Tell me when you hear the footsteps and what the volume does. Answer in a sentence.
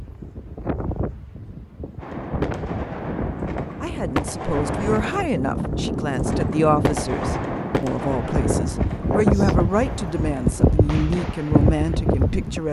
You can't hear the footsteps here.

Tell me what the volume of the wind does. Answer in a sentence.
The loudness of the wind goes up.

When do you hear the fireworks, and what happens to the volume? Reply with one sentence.
You can hear the fireworks from 2.0 to 11.9 s, getting quieter.